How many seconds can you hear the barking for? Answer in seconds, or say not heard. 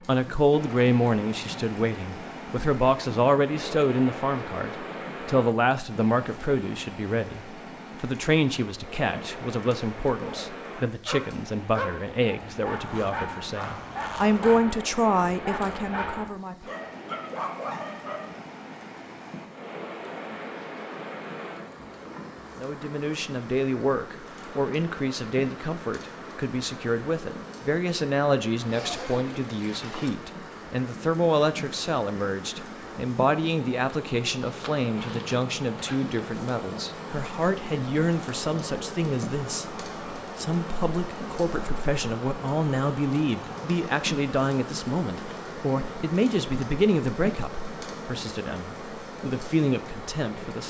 8 s.